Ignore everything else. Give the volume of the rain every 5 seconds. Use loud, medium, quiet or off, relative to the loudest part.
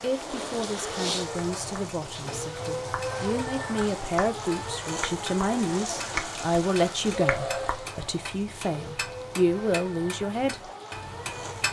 loud, loud, medium.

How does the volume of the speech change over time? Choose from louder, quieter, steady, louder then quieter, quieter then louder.
louder.